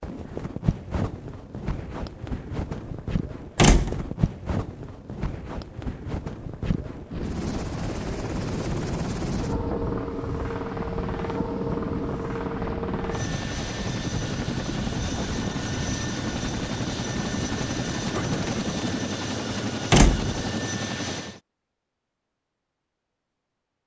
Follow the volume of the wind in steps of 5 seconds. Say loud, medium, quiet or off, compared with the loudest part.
loud, loud, loud, loud, off.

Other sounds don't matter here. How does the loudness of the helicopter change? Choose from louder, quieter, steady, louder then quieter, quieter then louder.
steady.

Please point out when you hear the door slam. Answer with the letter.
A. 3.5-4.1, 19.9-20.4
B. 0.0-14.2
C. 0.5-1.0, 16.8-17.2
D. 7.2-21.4
A.